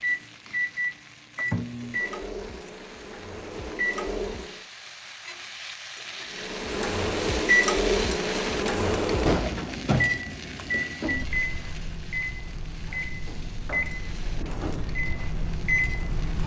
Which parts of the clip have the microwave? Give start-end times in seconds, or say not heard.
0.0-4.5, 6.3-16.4.